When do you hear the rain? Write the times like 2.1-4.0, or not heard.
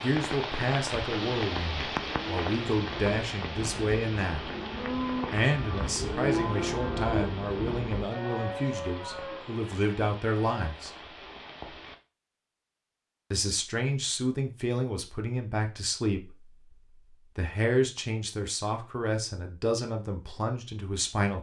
0.0-11.9.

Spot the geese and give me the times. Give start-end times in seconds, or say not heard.
not heard.